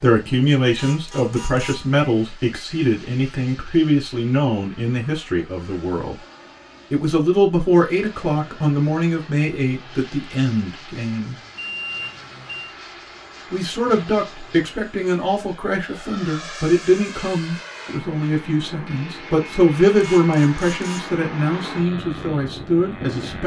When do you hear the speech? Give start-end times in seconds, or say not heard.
0.0-6.2, 6.9-11.3, 13.5-23.4.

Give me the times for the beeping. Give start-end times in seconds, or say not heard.
11.6-12.8.